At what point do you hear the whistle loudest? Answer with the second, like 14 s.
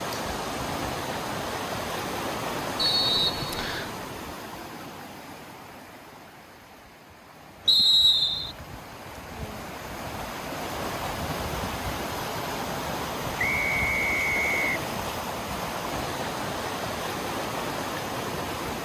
8 s.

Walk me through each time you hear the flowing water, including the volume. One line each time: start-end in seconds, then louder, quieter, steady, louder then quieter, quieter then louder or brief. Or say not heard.
0.0-18.8 quieter then louder.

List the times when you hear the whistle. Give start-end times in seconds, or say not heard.
2.8-3.9, 7.7-8.6, 13.3-14.7.